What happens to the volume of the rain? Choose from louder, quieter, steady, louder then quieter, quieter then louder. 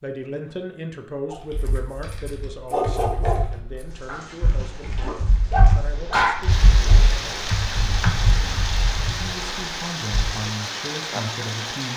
louder.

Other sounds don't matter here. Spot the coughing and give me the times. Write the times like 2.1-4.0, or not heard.
not heard.